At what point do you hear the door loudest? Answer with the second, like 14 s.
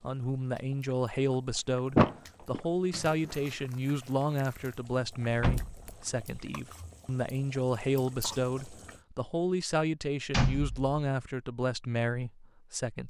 2 s.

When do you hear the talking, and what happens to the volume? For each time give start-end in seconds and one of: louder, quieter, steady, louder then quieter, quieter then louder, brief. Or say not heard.
0.0-13.0 steady.